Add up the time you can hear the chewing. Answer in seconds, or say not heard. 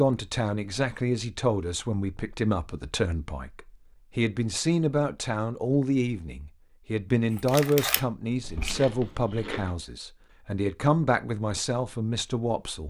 2 s.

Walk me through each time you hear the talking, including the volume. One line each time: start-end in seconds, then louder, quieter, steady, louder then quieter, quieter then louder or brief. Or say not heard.
0.0-12.8 steady.